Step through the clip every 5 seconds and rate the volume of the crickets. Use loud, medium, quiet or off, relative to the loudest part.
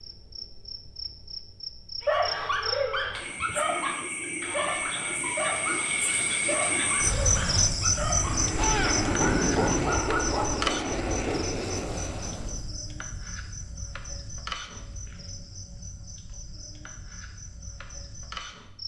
medium, loud, medium, quiet.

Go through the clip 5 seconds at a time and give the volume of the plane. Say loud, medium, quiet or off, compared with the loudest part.
off, loud, loud, off.